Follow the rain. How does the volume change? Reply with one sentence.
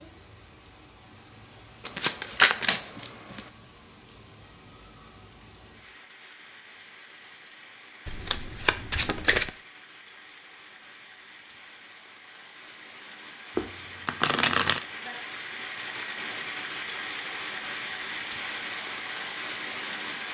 The loudness of the rain goes up.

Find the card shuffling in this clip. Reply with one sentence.
The card shuffling can be heard from 1.9 to 3.5 s, from 8.1 to 9.5 s and from 13.6 to 14.8 s.